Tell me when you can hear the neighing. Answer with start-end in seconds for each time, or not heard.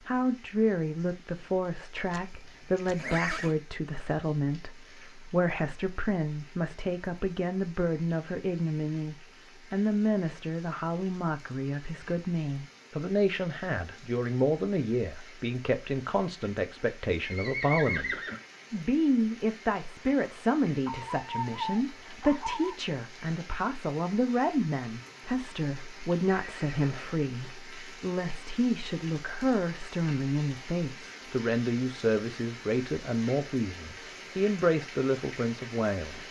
2.1-3.5, 17.2-18.4, 26.2-27.5.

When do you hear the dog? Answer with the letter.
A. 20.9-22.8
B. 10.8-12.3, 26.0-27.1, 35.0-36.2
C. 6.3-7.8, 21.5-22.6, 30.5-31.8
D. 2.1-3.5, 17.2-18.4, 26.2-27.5
A.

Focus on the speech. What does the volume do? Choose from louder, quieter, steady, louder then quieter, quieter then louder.
steady.